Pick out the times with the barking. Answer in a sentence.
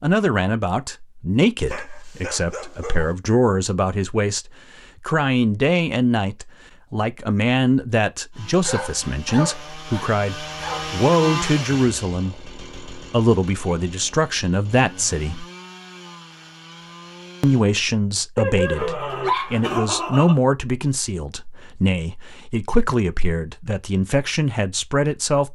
The barking can be heard from 1.6 to 3.1 s, from 8.6 to 10.9 s and from 18.4 to 20.4 s.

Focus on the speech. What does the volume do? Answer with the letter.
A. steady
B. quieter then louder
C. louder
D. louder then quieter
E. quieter
A.